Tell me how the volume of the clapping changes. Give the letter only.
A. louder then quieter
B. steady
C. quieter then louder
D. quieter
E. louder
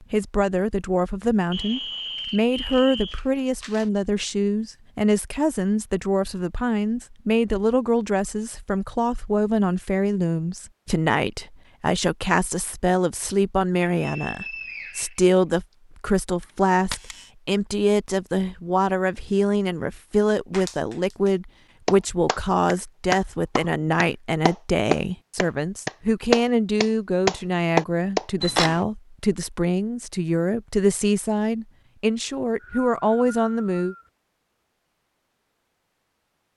E.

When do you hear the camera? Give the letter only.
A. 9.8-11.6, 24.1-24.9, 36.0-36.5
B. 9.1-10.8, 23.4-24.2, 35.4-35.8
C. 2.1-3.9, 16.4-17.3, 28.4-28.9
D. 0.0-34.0
C.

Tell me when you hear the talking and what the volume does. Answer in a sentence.
You can hear the talking from 0.0 to 34.0 s, at a steady volume.